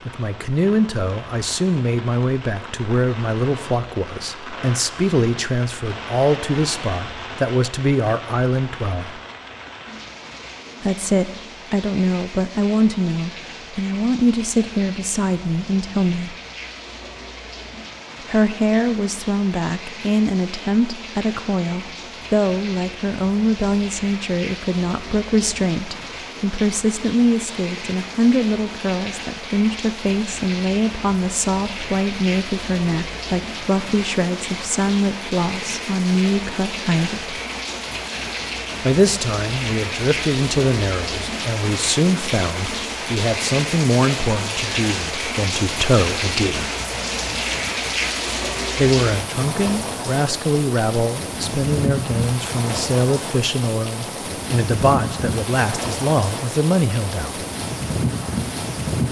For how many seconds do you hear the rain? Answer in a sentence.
The rain can be heard for 59 seconds in total.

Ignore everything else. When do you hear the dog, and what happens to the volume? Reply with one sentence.
The dog can't be heard in this clip.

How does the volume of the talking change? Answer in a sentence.
The loudness of the talking stays about the same.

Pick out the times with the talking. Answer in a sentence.
You can hear the talking from 0.1 to 9.2 s, from 10.8 to 16.4 s, from 18.2 to 37.4 s, from 38.8 to 46.7 s and from 48.8 to 57.5 s.